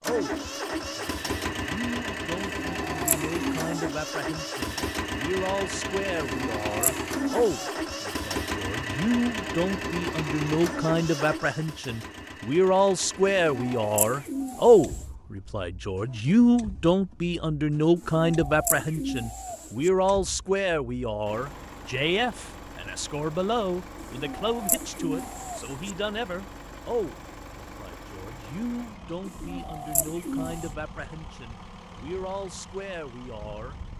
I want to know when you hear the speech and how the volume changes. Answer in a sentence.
You can hear the speech from 0.0 to 33.8 s, getting louder then quieter.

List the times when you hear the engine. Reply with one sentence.
You can hear the engine from 0.0 to 33.9 s.